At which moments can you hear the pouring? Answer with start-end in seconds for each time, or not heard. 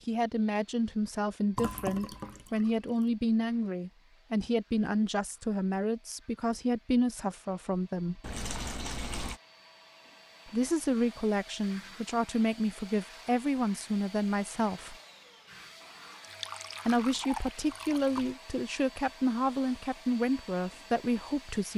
1.6-3.0, 8.2-9.4, 16.2-18.4.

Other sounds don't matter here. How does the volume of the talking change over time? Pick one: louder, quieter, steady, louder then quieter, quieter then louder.
steady.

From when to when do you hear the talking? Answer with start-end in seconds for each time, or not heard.
0.1-8.2, 10.4-14.9, 16.9-21.7.